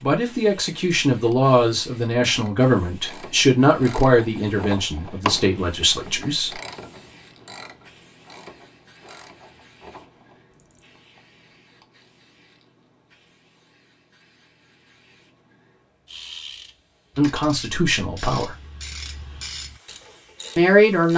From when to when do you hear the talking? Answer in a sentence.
You can hear the talking from 0.0 to 6.6 s, from 17.1 to 18.6 s and from 20.6 to 21.1 s.